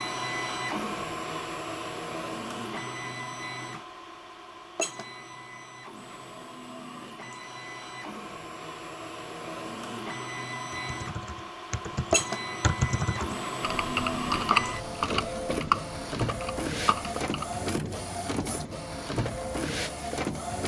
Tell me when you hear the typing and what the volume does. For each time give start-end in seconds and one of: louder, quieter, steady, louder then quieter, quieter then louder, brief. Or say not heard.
10.7-17.6 louder then quieter.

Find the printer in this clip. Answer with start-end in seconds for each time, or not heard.
0.0-20.6.